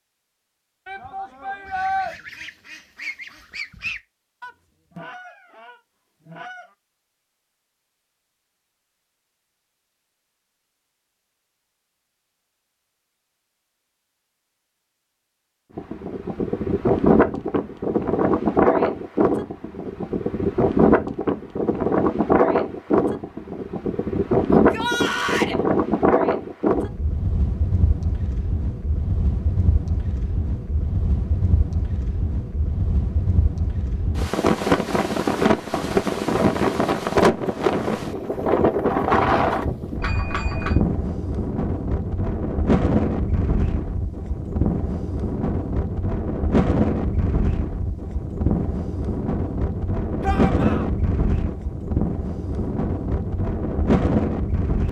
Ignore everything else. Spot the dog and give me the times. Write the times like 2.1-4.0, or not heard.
not heard.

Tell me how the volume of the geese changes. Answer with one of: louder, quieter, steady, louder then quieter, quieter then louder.
louder then quieter.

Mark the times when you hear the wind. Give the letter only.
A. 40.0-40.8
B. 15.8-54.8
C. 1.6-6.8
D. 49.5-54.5
B.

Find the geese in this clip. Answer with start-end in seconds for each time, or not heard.
1.6-6.8.